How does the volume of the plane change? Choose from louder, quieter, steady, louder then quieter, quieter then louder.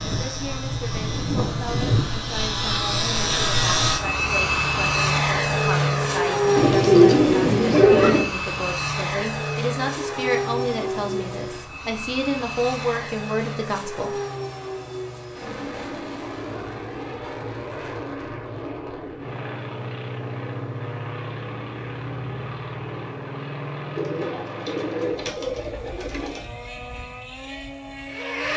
quieter.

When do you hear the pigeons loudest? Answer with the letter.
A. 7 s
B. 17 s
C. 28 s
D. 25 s
A.